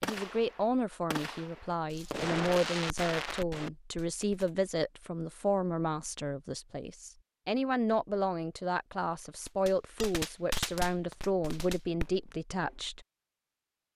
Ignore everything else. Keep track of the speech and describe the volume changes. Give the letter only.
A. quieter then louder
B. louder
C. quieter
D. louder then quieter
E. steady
E.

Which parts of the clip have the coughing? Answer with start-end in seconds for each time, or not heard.
not heard.